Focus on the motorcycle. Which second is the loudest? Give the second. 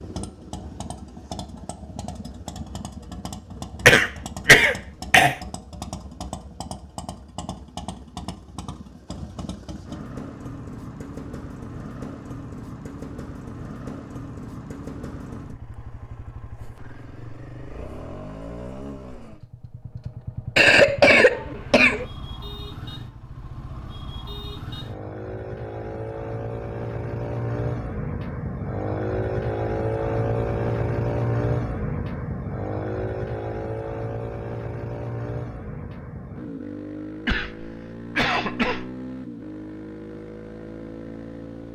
31 s.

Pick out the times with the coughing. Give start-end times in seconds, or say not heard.
3.9-5.3, 20.6-22.1, 37.2-38.9.